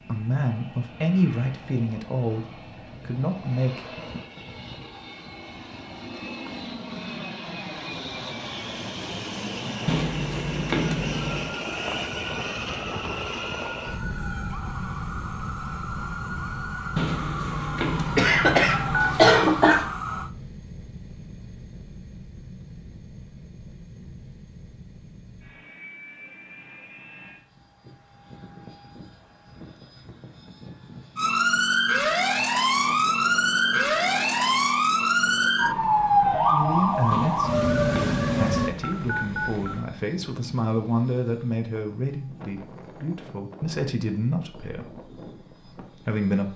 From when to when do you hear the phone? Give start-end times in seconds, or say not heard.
9.8-11.6, 16.9-19.4, 37.1-39.9.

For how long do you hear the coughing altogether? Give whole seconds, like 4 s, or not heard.
2 s.